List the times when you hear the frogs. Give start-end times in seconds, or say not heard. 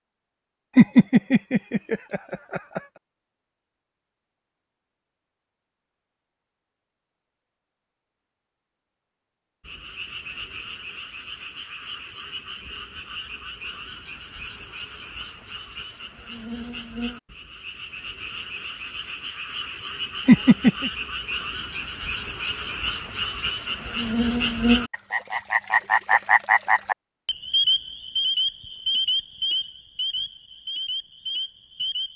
9.6-32.1.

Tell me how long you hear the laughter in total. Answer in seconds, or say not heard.
3 s.